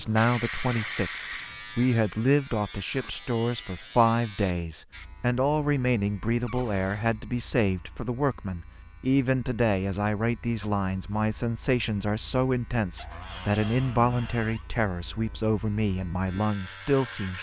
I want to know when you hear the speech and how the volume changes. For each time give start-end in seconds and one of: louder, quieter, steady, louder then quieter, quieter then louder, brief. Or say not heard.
0.0-17.3 steady.